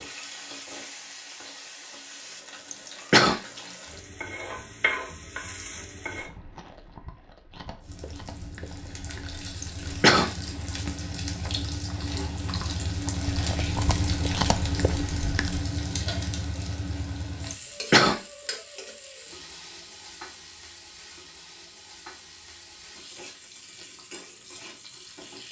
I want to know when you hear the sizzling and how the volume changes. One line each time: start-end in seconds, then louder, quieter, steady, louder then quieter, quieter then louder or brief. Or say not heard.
0.0-6.3 louder
7.8-25.4 louder then quieter.